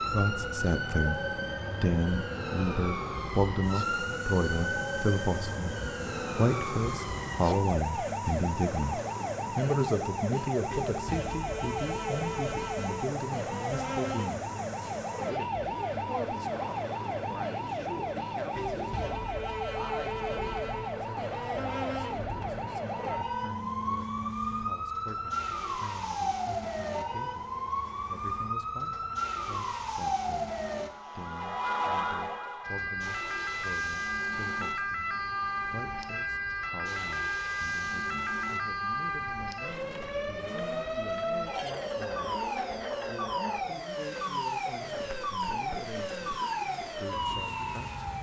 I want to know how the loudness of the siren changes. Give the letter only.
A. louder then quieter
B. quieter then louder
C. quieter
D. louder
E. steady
E.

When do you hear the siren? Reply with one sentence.
The siren can be heard from 0.0 to 48.1 s.